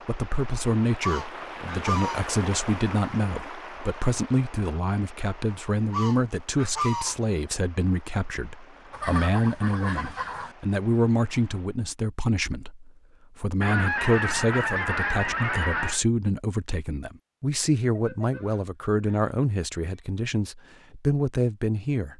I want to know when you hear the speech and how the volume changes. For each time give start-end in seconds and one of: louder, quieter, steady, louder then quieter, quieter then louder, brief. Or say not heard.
0.1-22.1 steady.